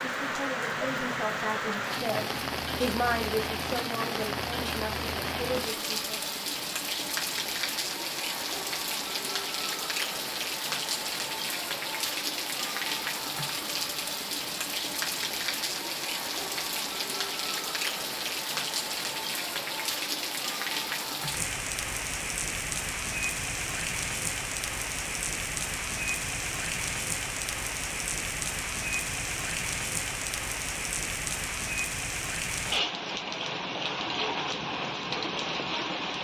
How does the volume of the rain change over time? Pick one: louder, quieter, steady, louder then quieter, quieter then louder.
steady.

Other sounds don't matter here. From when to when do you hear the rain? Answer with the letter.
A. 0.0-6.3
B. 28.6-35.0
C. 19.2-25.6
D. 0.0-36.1
D.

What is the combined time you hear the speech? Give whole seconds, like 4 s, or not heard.
6 s.